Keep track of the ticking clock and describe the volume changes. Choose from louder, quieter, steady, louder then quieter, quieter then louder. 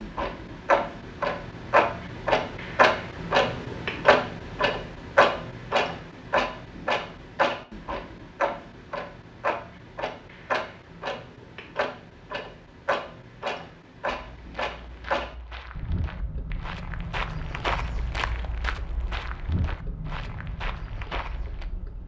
quieter.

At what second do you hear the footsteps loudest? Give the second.
18 s.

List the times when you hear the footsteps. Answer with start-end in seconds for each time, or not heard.
14.2-21.6.